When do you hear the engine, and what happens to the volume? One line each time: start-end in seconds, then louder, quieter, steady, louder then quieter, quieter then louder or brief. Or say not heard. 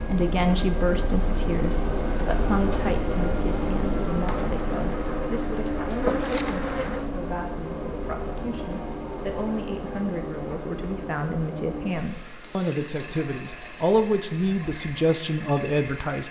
0.0-16.2 quieter.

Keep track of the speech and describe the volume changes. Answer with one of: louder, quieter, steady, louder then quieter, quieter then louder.
quieter then louder.